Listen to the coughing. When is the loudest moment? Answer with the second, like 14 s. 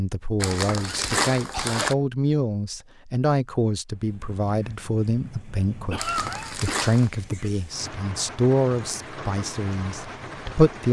6 s.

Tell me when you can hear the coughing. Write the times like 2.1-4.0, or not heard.
0.8-1.9, 5.9-7.9.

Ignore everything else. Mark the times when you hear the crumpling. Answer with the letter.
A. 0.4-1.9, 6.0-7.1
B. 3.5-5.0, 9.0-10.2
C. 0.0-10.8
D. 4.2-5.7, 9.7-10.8
A.